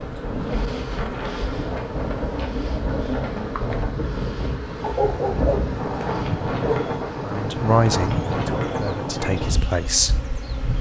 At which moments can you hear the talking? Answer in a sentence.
The talking can be heard from 7.2 to 10.2 s.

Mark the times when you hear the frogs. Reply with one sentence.
You can't hear the frogs here.